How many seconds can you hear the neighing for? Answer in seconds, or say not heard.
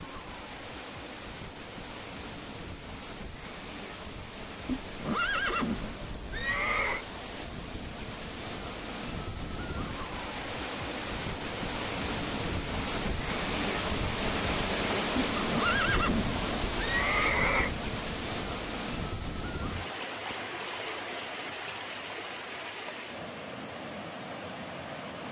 5 s.